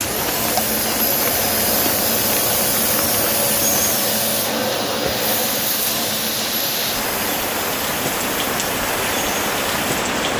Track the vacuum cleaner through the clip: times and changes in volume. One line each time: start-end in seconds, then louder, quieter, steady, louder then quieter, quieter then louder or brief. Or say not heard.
0.0-10.3 quieter.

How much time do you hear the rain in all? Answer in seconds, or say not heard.
10 s.